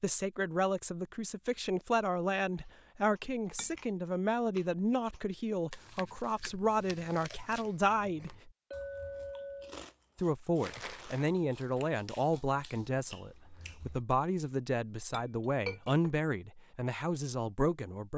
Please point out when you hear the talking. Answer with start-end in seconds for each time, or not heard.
0.0-8.5, 10.2-18.1.